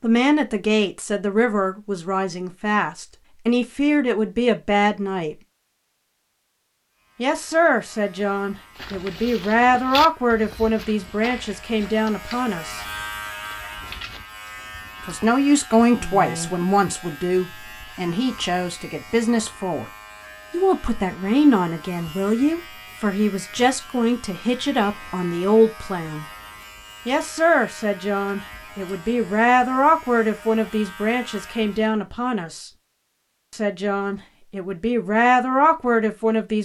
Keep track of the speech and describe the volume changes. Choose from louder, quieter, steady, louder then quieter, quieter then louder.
steady.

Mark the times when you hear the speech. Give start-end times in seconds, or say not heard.
0.0-5.3, 7.2-12.8, 15.1-19.9, 20.5-26.2, 27.1-32.7, 33.5-36.6.